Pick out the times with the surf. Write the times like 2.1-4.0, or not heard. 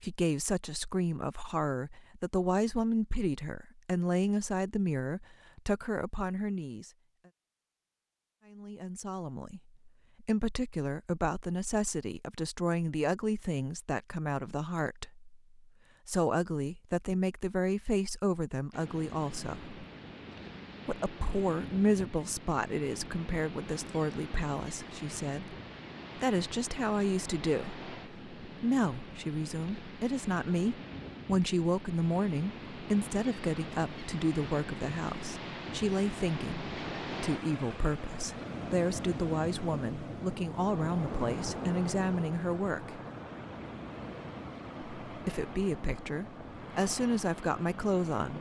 18.7-48.3.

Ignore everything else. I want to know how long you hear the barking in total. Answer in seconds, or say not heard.
not heard.